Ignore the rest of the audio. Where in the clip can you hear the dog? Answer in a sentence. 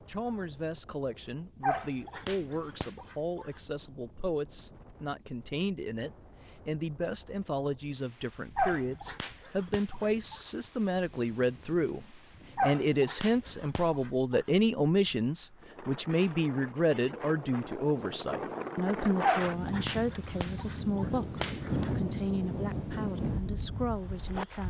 The dog can be heard from 1.6 to 3.5 s, from 8.6 to 10.4 s, from 12.6 to 14.4 s and from 19.2 to 21.9 s.